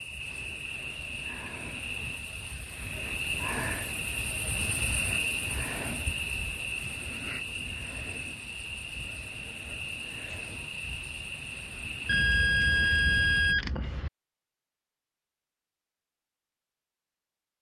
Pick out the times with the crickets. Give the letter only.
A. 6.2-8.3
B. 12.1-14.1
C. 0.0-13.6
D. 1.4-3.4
C.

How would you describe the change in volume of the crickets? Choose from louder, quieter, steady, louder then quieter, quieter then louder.
louder then quieter.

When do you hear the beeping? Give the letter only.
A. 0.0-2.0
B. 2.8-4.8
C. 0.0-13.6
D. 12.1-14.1
D.